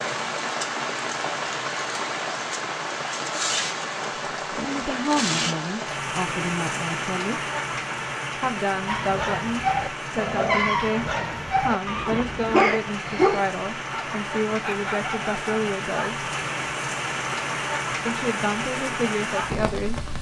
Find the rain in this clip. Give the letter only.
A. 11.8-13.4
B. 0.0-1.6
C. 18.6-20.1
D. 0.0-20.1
D.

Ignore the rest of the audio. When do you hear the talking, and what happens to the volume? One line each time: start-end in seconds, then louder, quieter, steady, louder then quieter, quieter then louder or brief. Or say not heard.
4.5-7.3 brief
8.3-16.2 steady
18.1-20.1 brief.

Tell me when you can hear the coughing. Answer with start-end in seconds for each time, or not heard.
11.8-13.4.